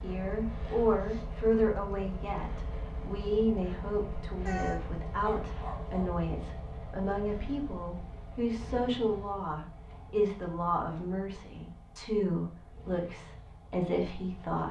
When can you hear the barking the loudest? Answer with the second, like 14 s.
5 s.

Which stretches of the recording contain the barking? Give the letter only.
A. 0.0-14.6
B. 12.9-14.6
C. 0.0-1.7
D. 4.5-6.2
D.